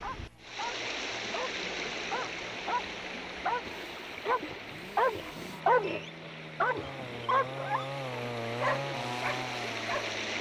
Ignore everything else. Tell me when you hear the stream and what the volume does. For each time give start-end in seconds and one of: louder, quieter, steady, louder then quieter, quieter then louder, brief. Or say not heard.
0.0-10.3 quieter then louder.